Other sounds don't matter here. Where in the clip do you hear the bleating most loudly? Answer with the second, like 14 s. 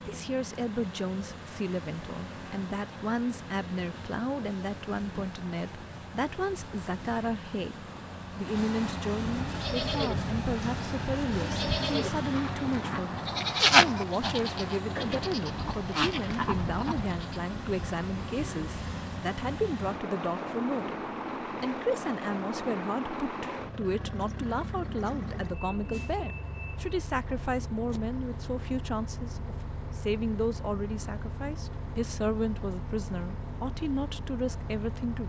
14 s.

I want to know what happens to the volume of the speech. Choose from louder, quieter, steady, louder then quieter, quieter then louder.
steady.